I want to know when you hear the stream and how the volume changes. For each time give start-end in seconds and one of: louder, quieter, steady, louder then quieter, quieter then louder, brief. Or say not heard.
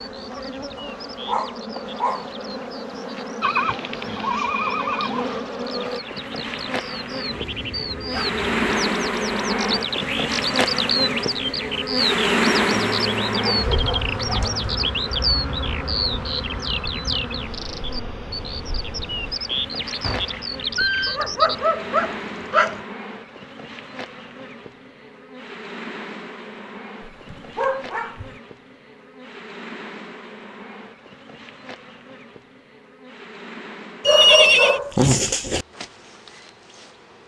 not heard.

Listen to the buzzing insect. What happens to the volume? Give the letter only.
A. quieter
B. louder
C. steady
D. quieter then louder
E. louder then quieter
E.